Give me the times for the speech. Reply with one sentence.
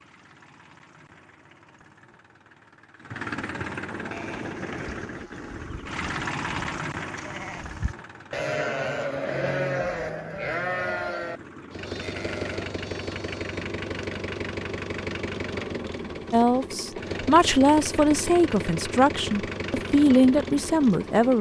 The speech can be heard from 16.3 to 21.3 s.